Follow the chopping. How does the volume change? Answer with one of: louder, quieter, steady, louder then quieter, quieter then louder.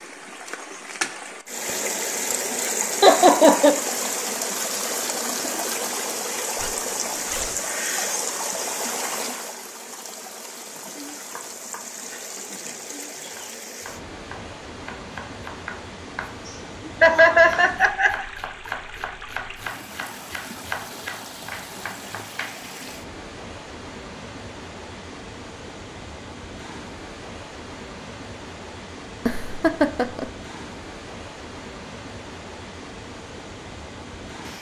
louder.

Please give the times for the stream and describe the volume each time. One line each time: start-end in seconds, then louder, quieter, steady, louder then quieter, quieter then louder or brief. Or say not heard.
0.0-34.5 quieter.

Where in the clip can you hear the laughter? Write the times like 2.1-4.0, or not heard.
3.0-3.8, 16.9-18.2, 29.2-30.2.